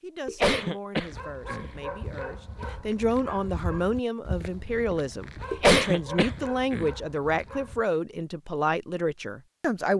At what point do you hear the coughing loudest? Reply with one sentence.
The loudest moment of the coughing is at 6 seconds.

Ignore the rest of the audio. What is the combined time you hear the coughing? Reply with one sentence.
You can hear the coughing for 3 seconds altogether.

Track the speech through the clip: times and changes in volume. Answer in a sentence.
The speech can be heard from 0.0 to 9.9 s, getting louder.